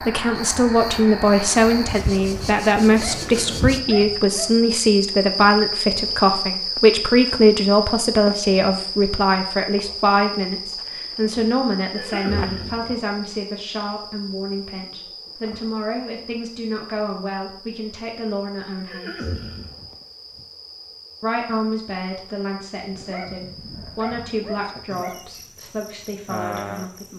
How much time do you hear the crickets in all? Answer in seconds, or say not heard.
27 s.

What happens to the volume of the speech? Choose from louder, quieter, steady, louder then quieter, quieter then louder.
quieter.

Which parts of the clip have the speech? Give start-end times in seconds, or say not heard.
0.0-19.3, 21.2-27.1.